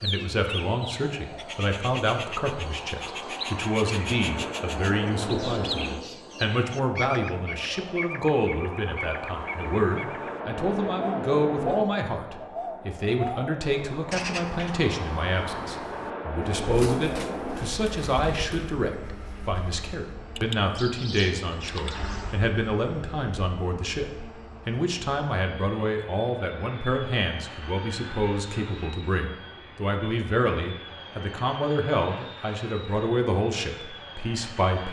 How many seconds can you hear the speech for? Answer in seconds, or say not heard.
35 s.